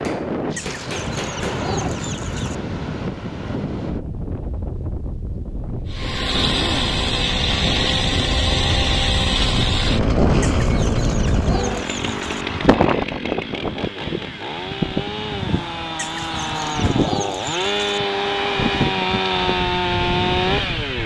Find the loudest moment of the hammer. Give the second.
1 s.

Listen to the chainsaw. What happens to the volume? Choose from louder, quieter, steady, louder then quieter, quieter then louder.
quieter then louder.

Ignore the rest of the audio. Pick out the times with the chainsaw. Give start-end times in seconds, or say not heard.
5.8-21.0.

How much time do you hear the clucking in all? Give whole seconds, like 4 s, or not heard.
6 s.